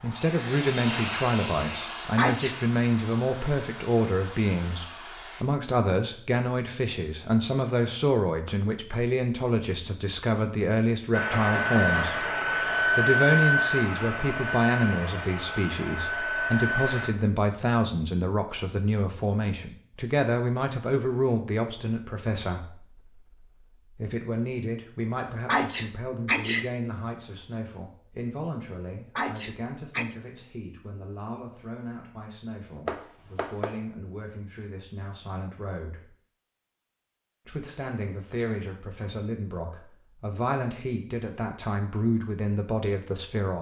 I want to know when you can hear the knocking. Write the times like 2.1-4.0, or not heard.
11.3-12.2, 32.9-33.7.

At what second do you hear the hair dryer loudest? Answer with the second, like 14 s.
13 s.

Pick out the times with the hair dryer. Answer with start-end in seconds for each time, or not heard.
0.0-5.5, 11.1-17.1.